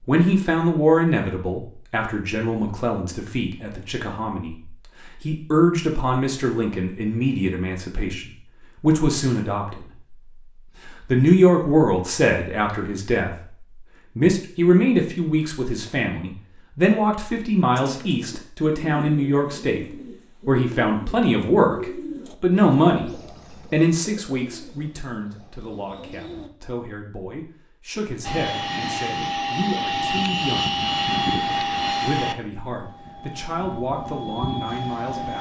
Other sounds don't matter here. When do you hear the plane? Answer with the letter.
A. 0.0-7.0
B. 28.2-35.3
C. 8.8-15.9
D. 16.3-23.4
B.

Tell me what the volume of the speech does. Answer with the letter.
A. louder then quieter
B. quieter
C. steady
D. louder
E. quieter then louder
B.